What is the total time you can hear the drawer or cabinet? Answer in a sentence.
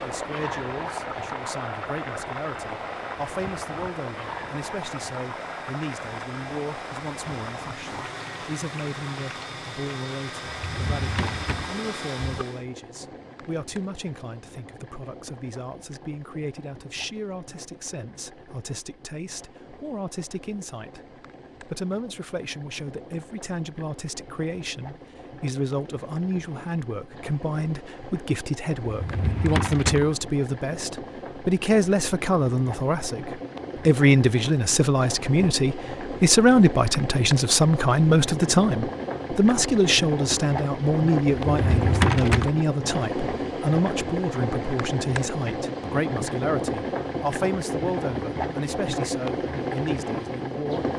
You can hear the drawer or cabinet for 4 seconds altogether.